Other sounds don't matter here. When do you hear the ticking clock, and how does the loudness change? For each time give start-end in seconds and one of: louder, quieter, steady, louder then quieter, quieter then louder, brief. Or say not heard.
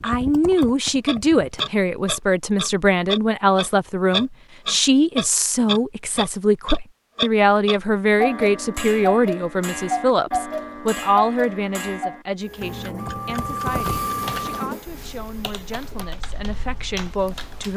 0.0-17.7 quieter.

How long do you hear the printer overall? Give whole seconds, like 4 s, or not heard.
4 s.